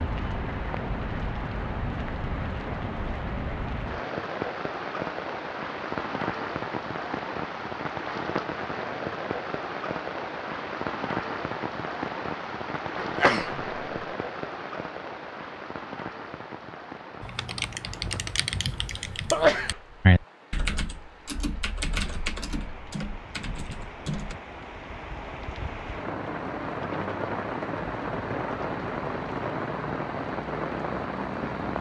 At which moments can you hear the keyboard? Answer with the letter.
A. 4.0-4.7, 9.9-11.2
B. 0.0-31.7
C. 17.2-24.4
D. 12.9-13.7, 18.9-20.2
C.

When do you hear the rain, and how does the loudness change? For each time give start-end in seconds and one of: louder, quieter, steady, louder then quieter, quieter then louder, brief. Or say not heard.
0.0-31.7 quieter then louder.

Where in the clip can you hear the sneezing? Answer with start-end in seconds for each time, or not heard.
12.9-13.7, 18.9-20.2.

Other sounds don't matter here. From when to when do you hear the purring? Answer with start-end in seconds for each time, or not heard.
not heard.